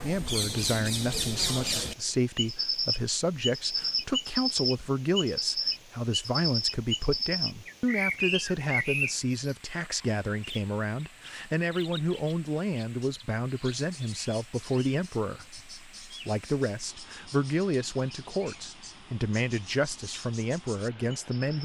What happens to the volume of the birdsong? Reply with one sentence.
The loudness of the birdsong goes down.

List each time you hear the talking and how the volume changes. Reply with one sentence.
The talking can be heard from 0.0 to 21.6 s, at a steady volume.